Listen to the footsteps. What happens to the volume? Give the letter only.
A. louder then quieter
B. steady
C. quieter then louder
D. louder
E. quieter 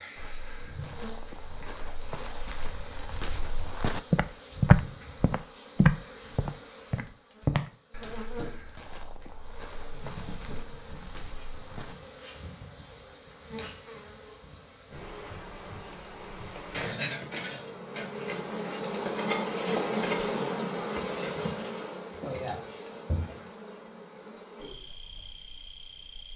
A.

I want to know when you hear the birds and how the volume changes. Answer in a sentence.
You can't hear the birds here.